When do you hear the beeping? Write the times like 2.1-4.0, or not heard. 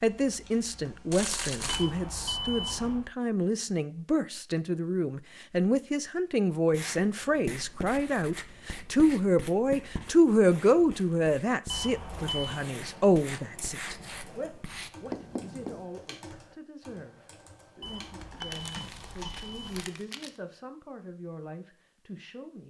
1.6-3.0, 11.7-12.7, 17.8-19.9.